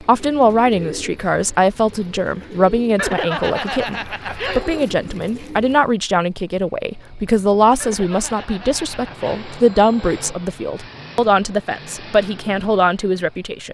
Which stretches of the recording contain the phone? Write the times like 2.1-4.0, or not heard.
3.0-4.8, 7.8-10.4.